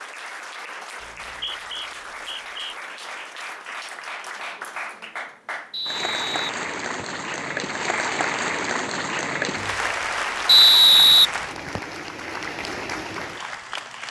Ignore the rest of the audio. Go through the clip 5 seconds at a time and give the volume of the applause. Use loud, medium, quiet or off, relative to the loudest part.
medium, loud, loud.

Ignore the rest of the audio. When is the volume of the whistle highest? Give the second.
11 s.